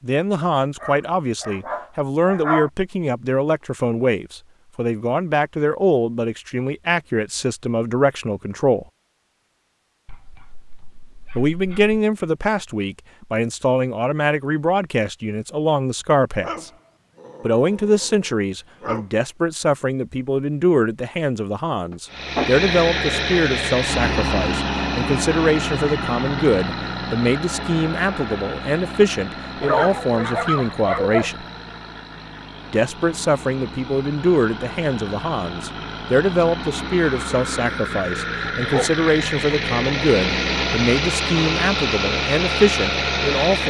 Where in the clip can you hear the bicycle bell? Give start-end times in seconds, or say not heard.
not heard.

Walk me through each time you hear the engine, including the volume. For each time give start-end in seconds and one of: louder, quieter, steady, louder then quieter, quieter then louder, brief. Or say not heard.
22.1-43.6 quieter then louder.